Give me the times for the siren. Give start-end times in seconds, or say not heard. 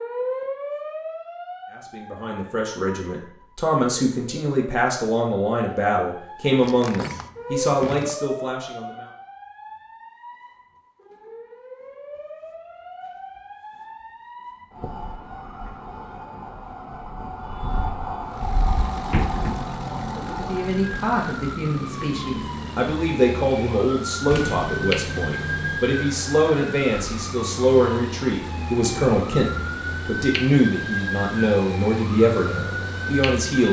0.0-33.6.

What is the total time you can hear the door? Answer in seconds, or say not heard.
4 s.